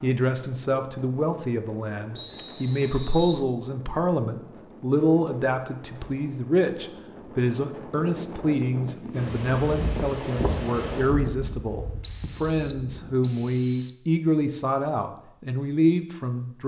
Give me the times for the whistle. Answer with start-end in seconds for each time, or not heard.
2.1-3.4, 12.0-13.9.